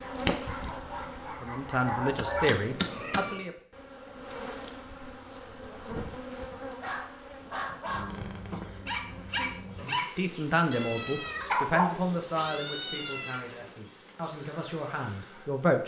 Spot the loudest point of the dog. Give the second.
12 s.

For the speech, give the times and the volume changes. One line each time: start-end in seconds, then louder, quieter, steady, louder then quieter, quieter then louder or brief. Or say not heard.
1.3-3.5 brief
9.8-15.8 quieter.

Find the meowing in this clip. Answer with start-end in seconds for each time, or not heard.
2.5-3.5, 8.1-8.7, 10.7-13.4.